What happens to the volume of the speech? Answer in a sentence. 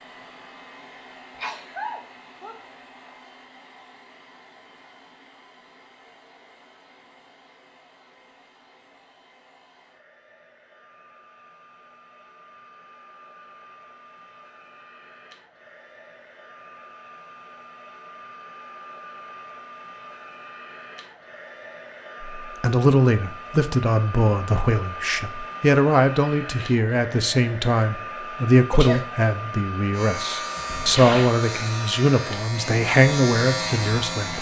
The volume of the speech stays about the same.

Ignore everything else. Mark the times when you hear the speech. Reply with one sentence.
The speech can be heard from 22.4 to 34.3 s.